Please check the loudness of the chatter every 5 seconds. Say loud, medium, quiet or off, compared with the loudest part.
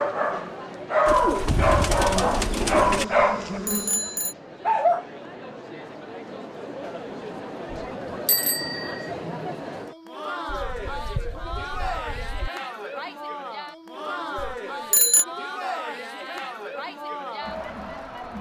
medium, loud, loud, loud.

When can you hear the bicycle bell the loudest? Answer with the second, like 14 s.
15 s.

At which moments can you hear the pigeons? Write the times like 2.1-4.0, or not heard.
1.1-3.0, 10.4-12.5.